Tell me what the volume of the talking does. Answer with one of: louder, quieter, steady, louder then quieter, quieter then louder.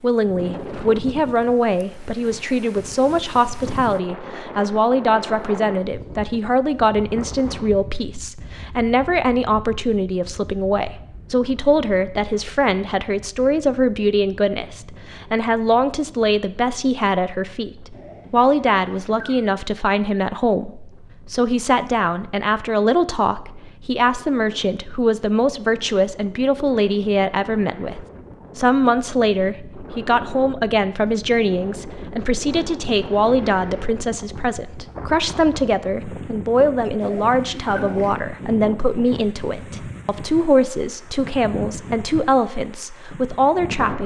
steady.